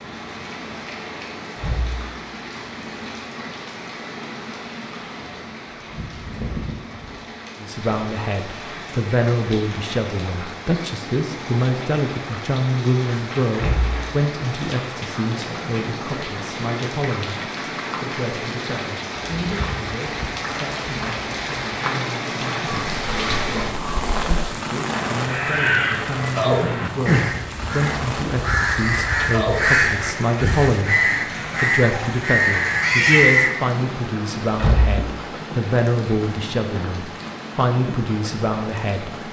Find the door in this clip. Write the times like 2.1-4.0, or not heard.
1.6-2.1, 13.6-14.1, 34.5-35.0.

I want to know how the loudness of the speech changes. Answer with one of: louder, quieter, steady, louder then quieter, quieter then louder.
quieter then louder.